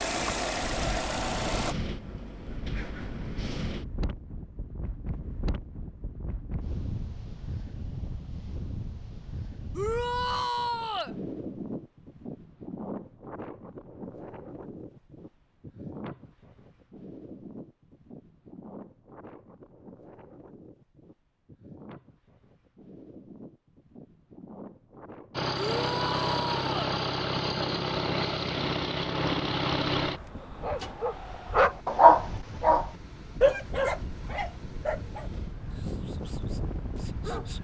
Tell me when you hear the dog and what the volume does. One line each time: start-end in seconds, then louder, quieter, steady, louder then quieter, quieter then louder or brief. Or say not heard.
30.4-37.5 louder then quieter.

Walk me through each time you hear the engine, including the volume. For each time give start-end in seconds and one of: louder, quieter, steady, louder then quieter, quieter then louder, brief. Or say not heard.
0.0-1.8 brief
25.3-30.9 steady.